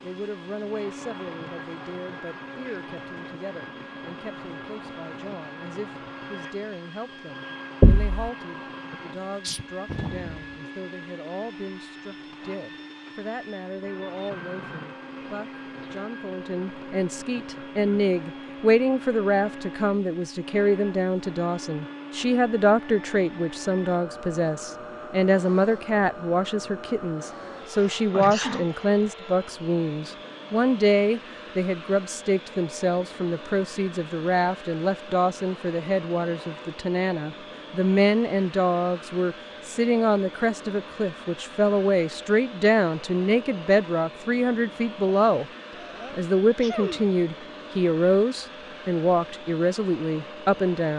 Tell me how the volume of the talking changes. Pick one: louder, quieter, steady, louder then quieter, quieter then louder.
louder.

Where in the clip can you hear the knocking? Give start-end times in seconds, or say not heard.
7.8-8.2.